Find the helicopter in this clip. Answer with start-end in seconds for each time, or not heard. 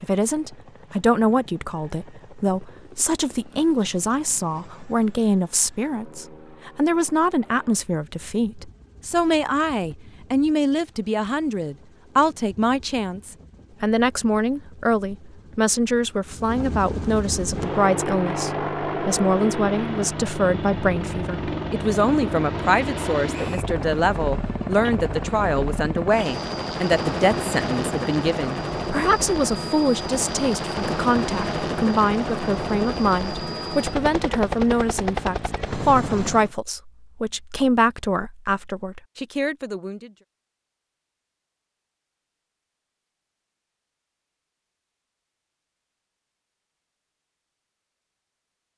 0.0-36.5.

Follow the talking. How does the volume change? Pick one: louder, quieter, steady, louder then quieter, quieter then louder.
steady.